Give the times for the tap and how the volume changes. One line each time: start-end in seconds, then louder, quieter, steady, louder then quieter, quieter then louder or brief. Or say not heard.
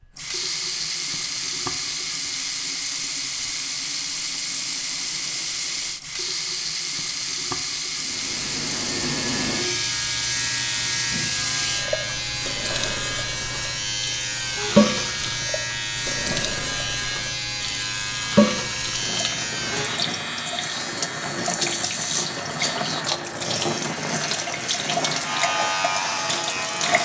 0.0-27.0 steady.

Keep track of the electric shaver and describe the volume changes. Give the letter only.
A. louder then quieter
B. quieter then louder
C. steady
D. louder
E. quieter
C.